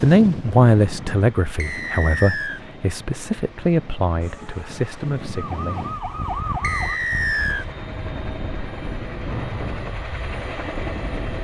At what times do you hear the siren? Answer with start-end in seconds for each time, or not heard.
4.2-7.0.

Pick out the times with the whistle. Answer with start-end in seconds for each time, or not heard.
1.6-2.6, 6.6-7.7.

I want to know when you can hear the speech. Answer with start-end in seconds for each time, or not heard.
0.0-5.8.